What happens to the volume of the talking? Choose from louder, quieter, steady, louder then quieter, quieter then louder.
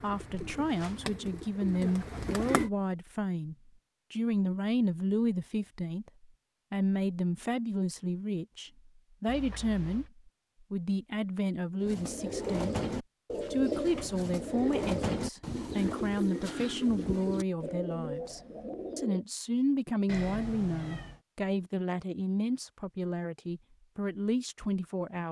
steady.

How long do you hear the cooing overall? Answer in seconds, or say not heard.
10 s.